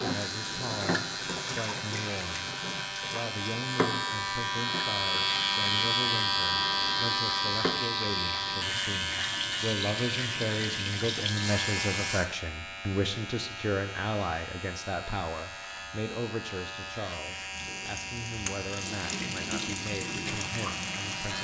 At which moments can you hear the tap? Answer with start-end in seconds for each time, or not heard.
0.0-12.2, 17.5-21.3.